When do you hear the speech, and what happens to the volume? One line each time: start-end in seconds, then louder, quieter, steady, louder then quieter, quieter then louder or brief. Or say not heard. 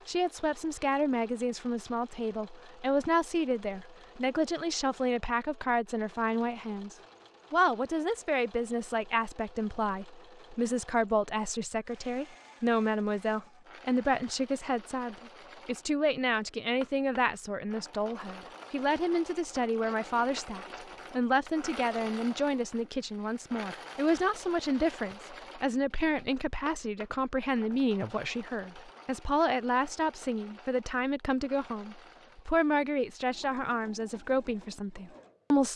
0.1-35.7 steady.